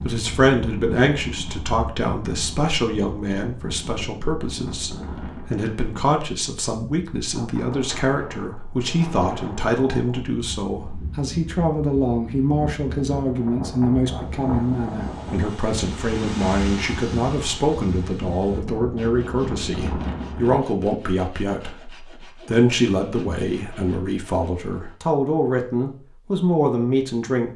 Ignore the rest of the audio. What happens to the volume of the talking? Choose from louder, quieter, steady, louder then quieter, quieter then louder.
steady.